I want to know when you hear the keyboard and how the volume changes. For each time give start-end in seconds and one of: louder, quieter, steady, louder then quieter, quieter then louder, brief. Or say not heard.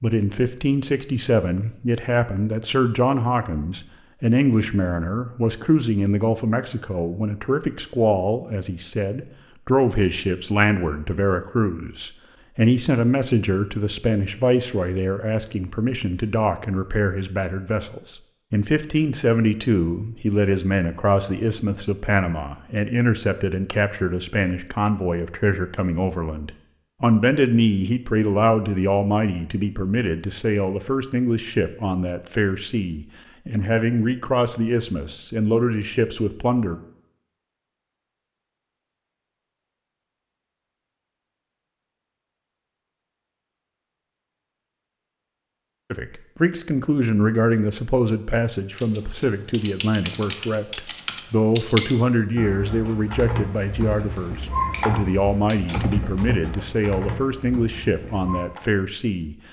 48.8-58.6 louder then quieter.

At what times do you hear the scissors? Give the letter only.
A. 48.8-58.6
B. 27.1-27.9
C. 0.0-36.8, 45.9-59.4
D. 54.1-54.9
D.